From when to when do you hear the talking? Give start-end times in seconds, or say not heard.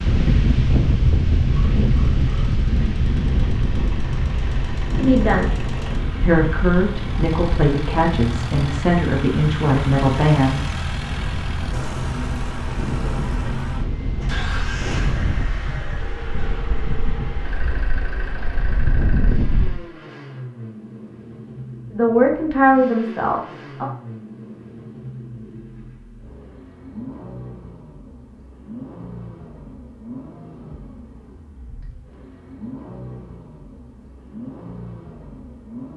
5.0-5.5, 6.2-10.6, 21.9-23.9.